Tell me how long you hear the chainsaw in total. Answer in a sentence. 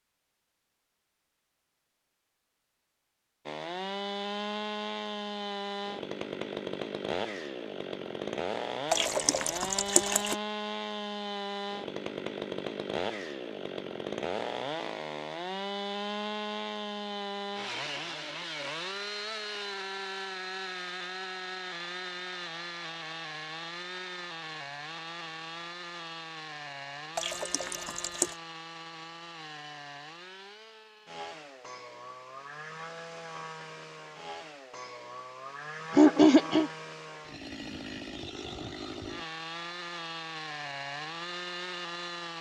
The chainsaw can be heard for 39 seconds in total.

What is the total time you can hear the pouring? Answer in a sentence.
You can hear the pouring for 3 seconds altogether.